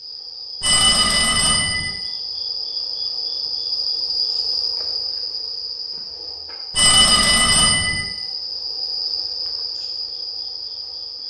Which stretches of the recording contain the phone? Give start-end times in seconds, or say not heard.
0.6-1.9, 6.7-8.1.